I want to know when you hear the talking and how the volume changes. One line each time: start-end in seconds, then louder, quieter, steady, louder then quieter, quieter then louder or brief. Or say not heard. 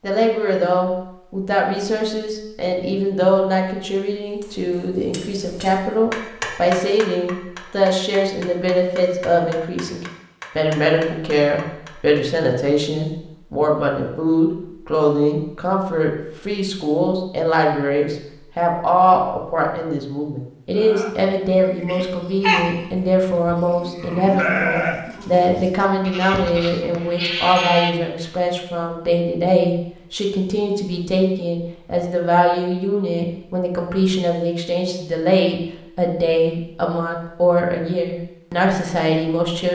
0.0-39.7 steady.